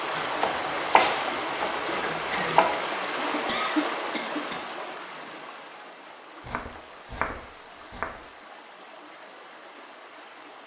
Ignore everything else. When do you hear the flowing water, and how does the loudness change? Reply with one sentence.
The flowing water can be heard from 0.0 to 10.6 s, getting quieter.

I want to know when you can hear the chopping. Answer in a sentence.
The chopping can be heard from 0.1 to 2.8 s and from 6.4 to 8.2 s.